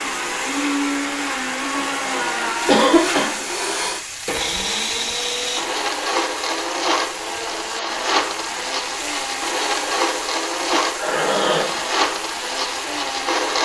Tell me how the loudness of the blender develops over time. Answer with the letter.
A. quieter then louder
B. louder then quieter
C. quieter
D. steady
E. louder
D.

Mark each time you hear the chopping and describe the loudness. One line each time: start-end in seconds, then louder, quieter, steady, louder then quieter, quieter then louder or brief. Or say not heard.
not heard.